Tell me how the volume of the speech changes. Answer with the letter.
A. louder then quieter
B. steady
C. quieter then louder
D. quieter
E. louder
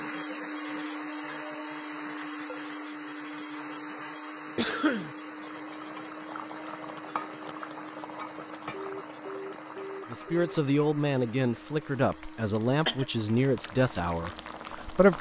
D.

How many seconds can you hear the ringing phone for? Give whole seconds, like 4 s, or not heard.
2 s.